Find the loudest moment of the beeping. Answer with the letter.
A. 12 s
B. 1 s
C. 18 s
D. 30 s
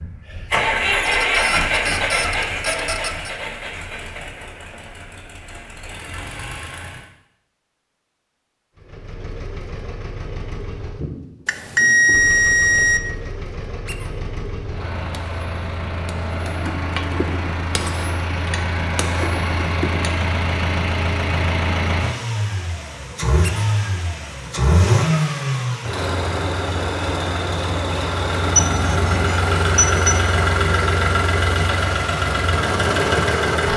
A.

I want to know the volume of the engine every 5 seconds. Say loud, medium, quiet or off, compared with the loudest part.
loud, quiet, quiet, medium, loud, loud, loud.